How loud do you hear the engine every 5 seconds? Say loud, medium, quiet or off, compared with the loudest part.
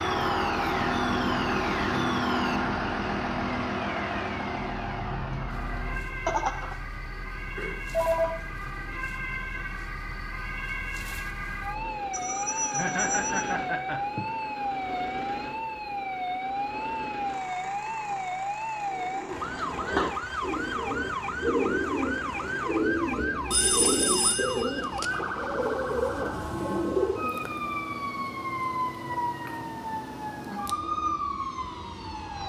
loud, quiet, quiet, quiet, quiet, quiet, quiet.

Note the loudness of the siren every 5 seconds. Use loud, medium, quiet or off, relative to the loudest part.
medium, medium, loud, loud, loud, loud, loud.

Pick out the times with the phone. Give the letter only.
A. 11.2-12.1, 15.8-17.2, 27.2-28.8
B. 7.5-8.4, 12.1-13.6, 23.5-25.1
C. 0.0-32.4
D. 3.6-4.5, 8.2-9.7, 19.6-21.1
B.